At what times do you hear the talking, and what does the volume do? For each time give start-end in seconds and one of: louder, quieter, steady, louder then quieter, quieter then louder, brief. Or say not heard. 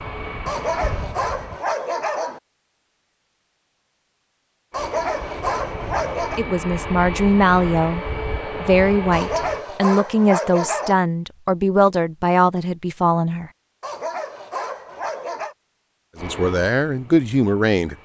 6.3-13.5 steady
16.2-17.9 brief.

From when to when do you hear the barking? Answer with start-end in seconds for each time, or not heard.
0.5-2.4, 4.7-6.5, 9.1-11.0, 13.8-15.6.